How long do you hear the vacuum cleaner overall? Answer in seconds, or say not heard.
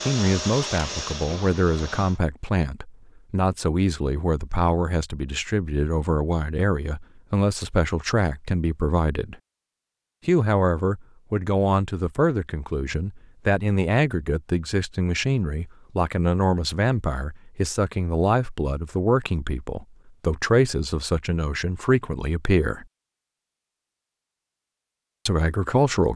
2 s.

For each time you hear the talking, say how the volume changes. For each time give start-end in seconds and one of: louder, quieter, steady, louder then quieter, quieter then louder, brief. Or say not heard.
0.0-9.3 steady
10.2-22.9 steady
25.2-26.1 brief.